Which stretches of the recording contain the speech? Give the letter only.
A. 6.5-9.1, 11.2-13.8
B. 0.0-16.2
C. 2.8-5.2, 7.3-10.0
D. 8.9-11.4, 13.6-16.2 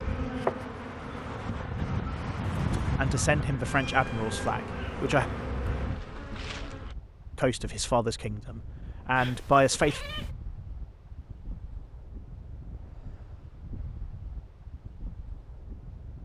C.